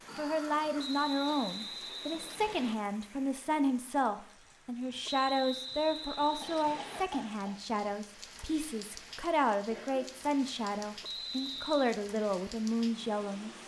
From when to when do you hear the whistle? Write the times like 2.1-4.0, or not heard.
0.8-2.8, 5.0-7.0, 11.0-11.9.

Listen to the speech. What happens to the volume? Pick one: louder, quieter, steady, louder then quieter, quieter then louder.
steady.